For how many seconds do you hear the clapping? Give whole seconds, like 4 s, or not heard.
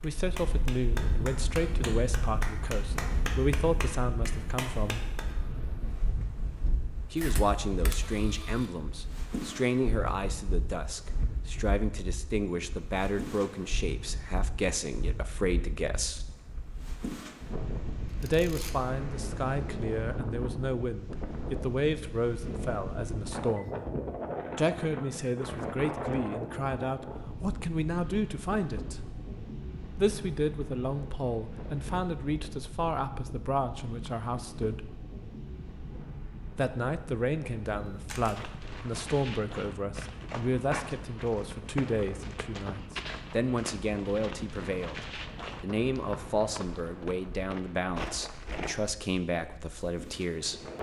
5 s.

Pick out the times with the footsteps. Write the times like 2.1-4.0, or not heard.
38.4-49.0.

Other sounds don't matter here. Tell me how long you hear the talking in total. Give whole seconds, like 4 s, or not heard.
43 s.